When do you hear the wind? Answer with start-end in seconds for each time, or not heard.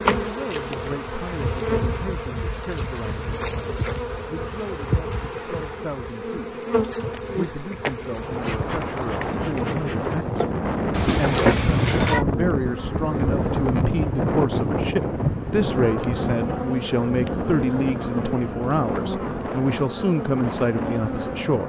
8.1-21.6.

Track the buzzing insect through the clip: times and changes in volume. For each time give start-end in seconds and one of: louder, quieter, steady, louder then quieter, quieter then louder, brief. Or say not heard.
0.0-21.6 steady.